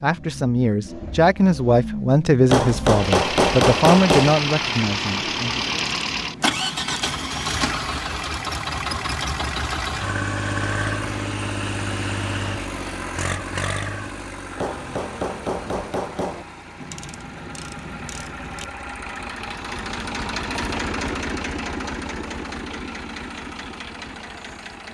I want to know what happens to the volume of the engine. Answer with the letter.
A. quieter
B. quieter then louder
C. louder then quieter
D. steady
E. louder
B.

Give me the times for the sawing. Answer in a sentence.
The sawing can't be heard in this clip.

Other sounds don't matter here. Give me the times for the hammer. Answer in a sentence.
The hammer can be heard from 2.5 to 4.3 s and from 14.6 to 16.4 s.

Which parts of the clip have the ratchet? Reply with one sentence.
You can hear the ratchet from 5.7 to 7.5 s and from 16.8 to 18.6 s.